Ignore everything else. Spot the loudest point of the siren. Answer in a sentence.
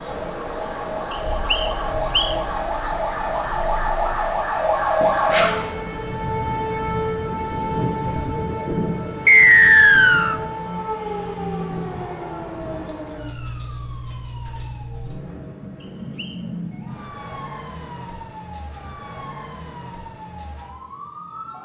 The loudest moment of the siren is at 5 seconds.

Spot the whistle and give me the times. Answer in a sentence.
You can hear the whistle from 1.1 to 2.4 s, from 9.2 to 10.4 s and from 15.8 to 16.4 s.